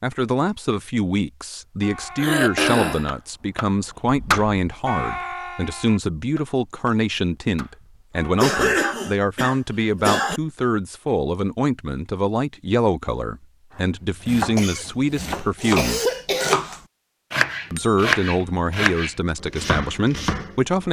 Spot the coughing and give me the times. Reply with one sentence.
The coughing can be heard from 2.1 to 3.1 s, from 8.3 to 10.4 s and from 14.6 to 16.6 s.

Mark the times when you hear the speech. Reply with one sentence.
The speech can be heard from 0.0 to 16.0 s and from 17.7 to 20.8 s.